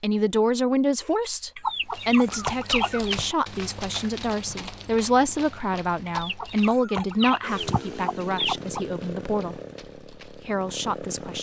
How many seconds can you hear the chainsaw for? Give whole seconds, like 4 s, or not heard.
4 s.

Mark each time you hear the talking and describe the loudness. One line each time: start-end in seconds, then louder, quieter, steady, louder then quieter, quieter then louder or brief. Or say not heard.
0.0-9.6 quieter
10.3-11.3 brief.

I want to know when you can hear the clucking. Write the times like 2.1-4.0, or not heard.
1.6-3.2, 6.0-8.8.